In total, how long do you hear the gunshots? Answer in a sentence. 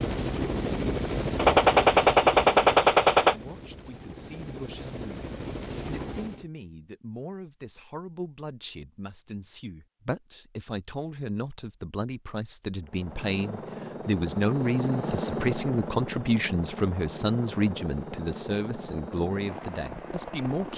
You can hear the gunshots for 2 seconds altogether.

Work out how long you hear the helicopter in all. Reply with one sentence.
The helicopter can be heard for 14 seconds in total.